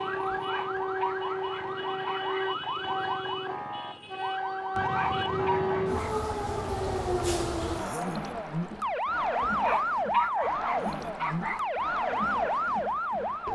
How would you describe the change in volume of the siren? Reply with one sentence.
The loudness of the siren stays about the same.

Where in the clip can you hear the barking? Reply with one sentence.
The barking can be heard from 0.3 to 2.4 s, from 4.8 to 6.2 s and from 9.4 to 11.7 s.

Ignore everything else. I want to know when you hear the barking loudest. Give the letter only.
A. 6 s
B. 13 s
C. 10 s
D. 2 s
C.